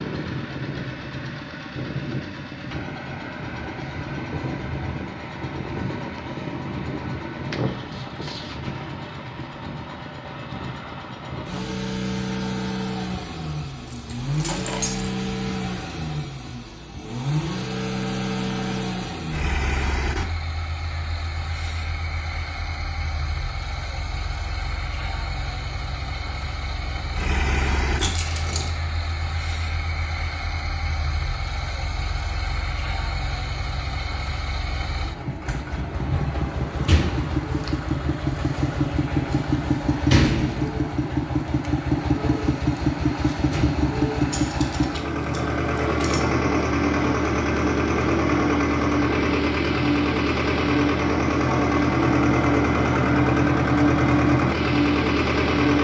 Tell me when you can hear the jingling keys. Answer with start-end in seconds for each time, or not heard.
13.8-15.1, 27.9-28.7, 44.3-46.2.